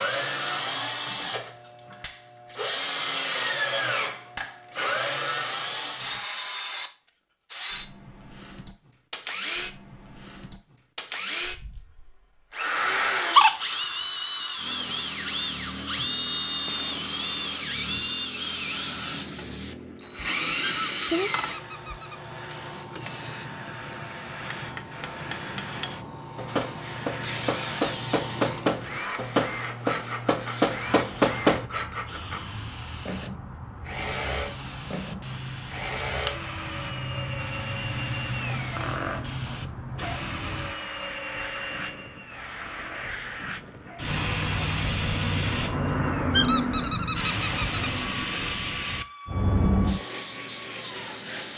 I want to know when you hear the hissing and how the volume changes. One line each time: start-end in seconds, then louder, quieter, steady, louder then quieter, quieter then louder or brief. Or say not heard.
14.6-51.5 louder.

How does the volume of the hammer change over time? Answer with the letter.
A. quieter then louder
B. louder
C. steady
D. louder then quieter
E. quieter
B.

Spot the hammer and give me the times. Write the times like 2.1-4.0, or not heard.
24.3-31.6.